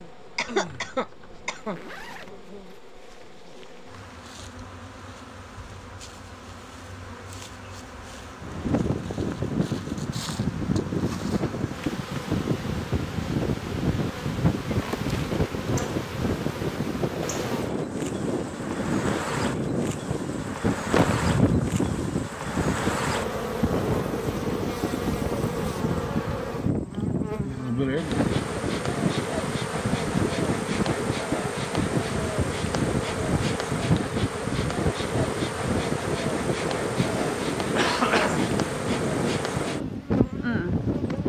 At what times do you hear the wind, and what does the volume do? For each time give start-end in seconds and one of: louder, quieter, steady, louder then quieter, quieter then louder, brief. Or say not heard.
8.4-41.2 steady.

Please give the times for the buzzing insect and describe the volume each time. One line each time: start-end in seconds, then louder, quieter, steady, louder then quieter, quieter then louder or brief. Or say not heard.
0.0-41.2 louder.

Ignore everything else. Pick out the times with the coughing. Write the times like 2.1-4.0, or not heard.
0.3-1.8, 20.9-21.9, 37.0-38.8.